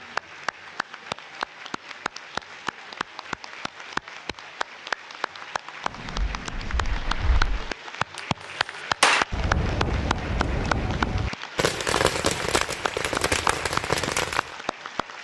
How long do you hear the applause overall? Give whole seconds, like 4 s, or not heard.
15 s.